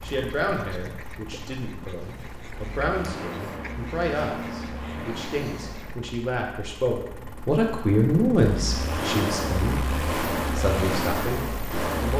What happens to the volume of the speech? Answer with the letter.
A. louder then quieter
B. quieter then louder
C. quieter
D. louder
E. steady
A.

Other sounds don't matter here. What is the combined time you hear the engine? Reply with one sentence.
The engine can be heard for 12 seconds in total.